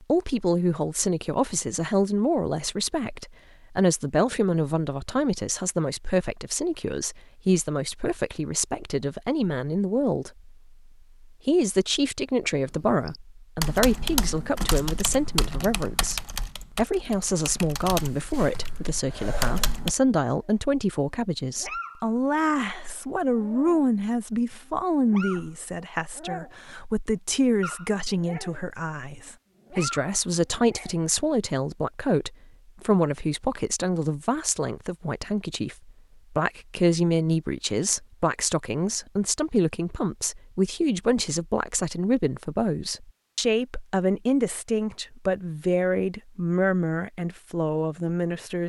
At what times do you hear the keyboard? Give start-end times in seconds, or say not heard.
13.1-19.9.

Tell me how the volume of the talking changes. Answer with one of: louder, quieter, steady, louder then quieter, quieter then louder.
steady.